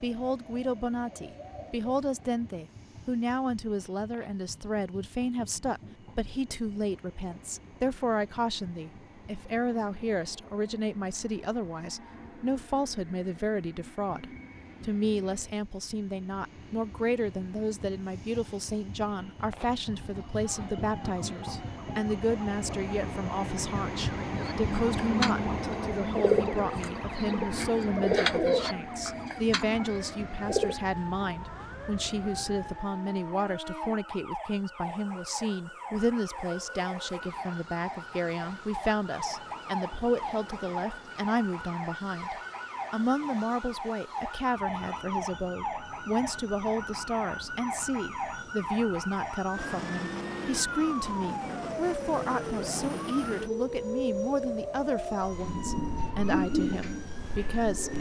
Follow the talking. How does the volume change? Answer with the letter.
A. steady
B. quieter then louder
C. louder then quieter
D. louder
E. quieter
A.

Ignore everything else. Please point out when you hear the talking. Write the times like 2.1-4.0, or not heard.
0.0-57.9.